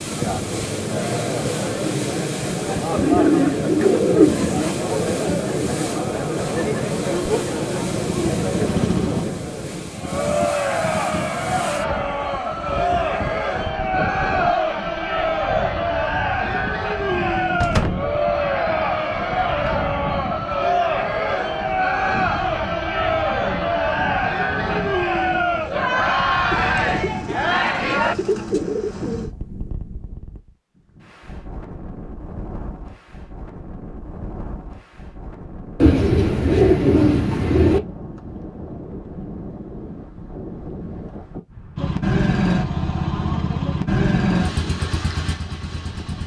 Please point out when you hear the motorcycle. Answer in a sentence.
You can hear the motorcycle from 6.3 to 9.2 s and from 41.8 to 46.2 s.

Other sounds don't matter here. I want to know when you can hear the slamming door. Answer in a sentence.
You can hear the slamming door from 17.6 to 18.1 s.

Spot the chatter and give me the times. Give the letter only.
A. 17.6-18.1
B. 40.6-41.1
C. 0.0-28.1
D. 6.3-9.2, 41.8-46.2
C.